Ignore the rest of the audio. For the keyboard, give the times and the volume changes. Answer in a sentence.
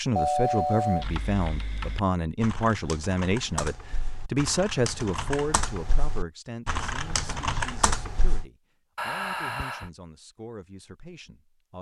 The keyboard can be heard from 0.9 to 8.4 s, getting louder.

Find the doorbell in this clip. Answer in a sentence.
The doorbell can be heard from 0.1 to 1.1 s and from 8.9 to 9.9 s.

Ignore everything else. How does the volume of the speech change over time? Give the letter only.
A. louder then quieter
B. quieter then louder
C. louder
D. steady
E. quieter
E.